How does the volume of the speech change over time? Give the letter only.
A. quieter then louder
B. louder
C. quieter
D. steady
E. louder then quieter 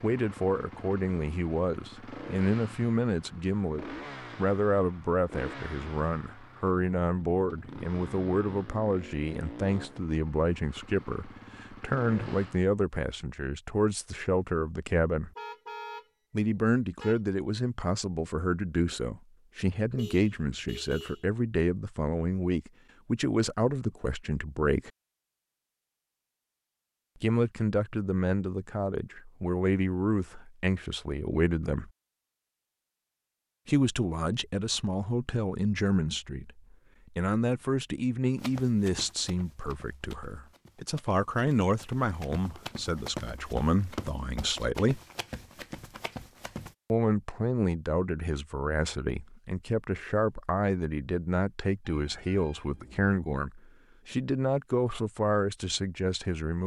D.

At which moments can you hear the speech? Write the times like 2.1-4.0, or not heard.
0.0-15.3, 16.3-24.9, 27.2-31.9, 33.6-45.0, 46.9-56.6.